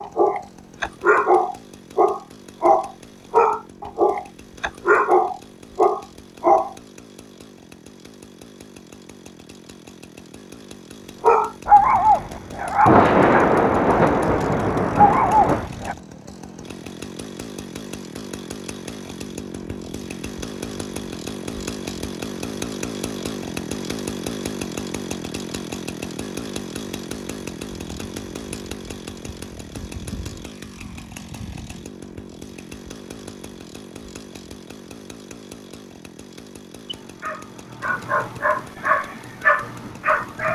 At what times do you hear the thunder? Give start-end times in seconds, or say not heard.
12.8-15.7.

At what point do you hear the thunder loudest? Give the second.
13 s.